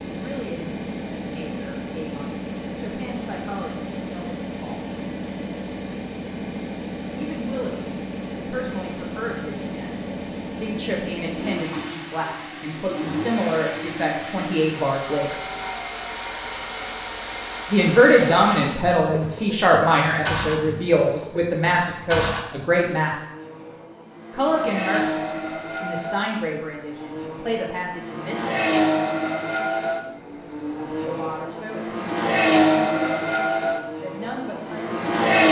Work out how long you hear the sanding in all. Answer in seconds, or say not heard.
not heard.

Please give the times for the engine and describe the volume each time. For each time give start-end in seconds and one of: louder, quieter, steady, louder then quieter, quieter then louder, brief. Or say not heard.
0.0-35.4 louder.